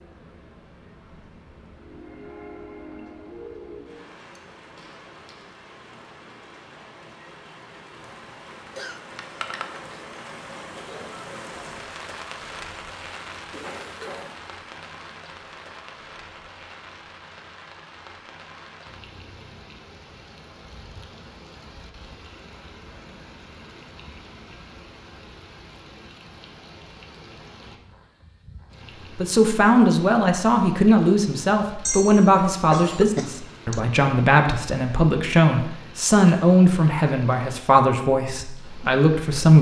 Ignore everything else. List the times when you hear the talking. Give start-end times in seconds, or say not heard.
29.1-39.5.